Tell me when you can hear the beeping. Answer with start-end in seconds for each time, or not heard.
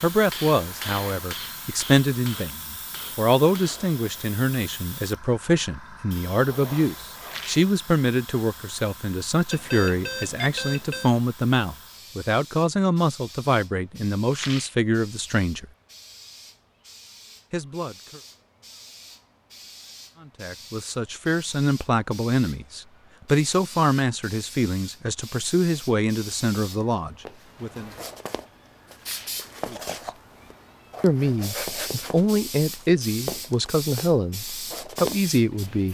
9.5-11.2.